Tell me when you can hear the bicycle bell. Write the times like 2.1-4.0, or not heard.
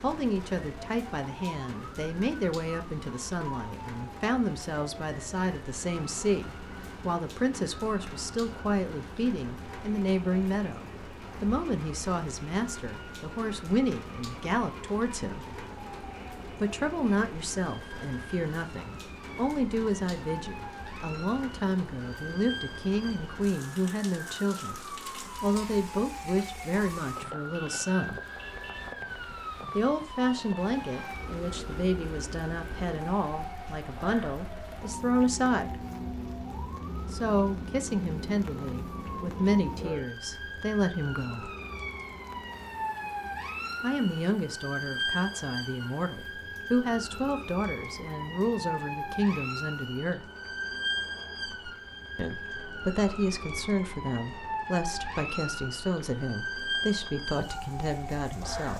not heard.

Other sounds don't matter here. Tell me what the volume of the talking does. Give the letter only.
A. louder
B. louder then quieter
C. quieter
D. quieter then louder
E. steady
E.